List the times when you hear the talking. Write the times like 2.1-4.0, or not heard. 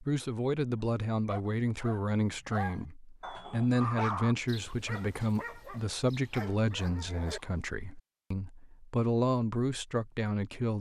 0.0-10.7.